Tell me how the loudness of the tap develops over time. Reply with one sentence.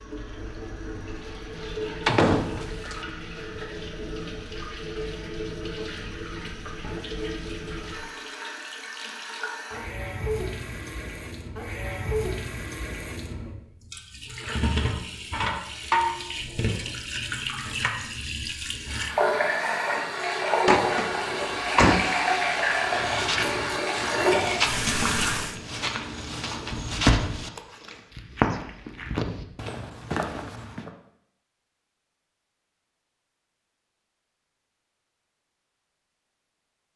The volume of the tap goes up.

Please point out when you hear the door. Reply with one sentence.
The door can be heard from 2.0 to 3.0 s, from 20.6 to 22.1 s and from 26.7 to 27.4 s.